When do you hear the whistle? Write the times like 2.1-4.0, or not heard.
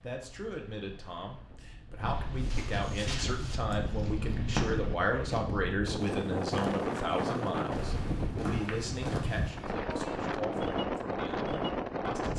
not heard.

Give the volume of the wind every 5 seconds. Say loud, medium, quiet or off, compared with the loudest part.
medium, loud, loud.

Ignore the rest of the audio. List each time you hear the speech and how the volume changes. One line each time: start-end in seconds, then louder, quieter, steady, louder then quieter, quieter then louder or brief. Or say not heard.
0.0-12.3 louder then quieter.